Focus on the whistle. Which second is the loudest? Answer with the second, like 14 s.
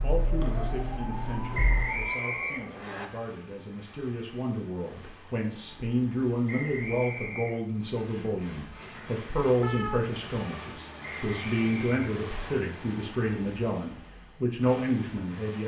2 s.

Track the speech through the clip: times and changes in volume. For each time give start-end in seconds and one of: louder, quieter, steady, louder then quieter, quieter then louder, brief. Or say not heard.
0.0-15.6 louder.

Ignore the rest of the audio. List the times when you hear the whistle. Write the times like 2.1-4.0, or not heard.
1.5-3.0, 6.5-7.6, 11.0-12.6.